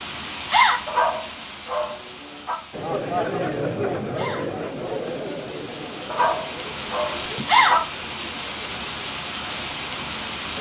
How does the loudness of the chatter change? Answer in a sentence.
The volume of the chatter goes down.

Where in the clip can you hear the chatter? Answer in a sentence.
You can hear the chatter from 2.7 to 10.5 s.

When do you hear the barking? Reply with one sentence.
The barking can be heard from 0.8 to 2.6 s and from 6.0 to 7.8 s.